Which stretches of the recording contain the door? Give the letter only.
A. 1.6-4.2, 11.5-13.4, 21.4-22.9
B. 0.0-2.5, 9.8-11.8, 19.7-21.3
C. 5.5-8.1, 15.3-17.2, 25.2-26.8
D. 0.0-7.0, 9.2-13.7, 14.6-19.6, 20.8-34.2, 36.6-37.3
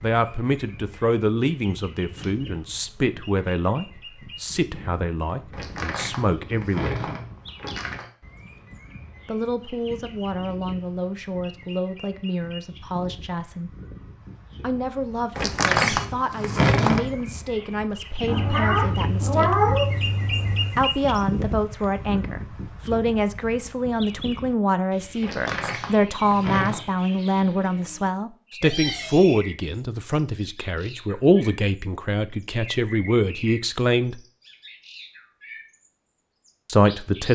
C.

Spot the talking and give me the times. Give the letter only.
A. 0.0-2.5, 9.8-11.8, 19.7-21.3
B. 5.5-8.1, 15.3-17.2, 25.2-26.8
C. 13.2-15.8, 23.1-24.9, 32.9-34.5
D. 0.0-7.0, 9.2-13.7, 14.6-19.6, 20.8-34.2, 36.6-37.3
D.